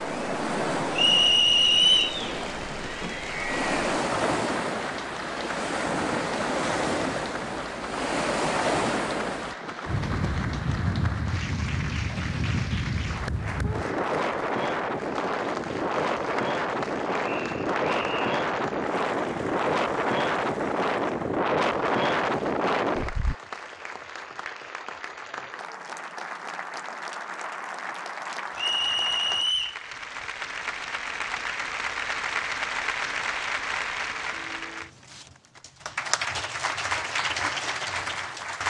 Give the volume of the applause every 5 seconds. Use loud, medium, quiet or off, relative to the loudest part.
medium, medium, medium, medium, medium, medium, loud, loud.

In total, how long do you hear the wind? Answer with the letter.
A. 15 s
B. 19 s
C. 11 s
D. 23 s
D.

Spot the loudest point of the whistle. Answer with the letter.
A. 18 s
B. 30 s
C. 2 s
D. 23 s
C.